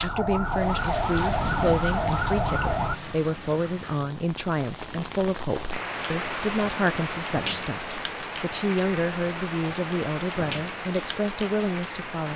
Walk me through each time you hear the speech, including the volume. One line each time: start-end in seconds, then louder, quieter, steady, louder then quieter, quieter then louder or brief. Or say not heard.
0.0-12.3 steady.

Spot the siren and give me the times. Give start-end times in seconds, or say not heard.
0.0-3.0.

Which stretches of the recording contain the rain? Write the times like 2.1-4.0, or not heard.
0.0-12.3.